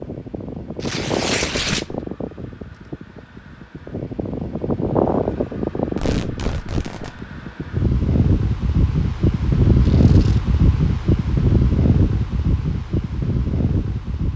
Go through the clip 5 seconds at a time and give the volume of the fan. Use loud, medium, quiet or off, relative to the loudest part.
medium, loud, loud.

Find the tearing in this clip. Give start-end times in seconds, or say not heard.
0.8-2.0, 6.0-7.2, 9.8-10.4.